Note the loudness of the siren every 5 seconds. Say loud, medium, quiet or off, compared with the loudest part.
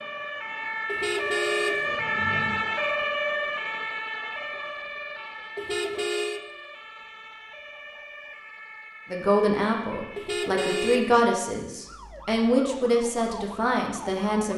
loud, quiet, quiet.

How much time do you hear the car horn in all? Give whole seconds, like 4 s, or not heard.
4 s.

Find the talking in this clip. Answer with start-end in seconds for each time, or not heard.
9.1-14.5.